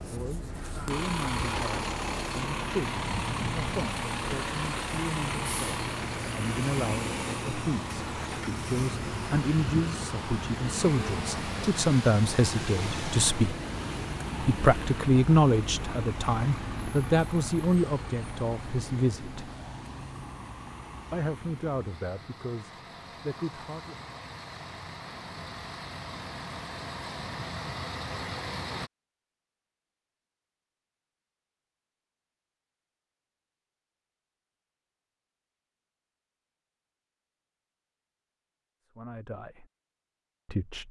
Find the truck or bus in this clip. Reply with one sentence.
You can hear the truck or bus from 0.0 to 28.9 s.